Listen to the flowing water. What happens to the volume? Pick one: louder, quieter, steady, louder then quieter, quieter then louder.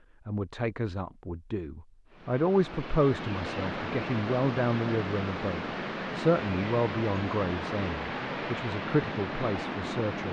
steady.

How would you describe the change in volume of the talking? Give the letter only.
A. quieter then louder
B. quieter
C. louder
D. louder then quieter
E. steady
E.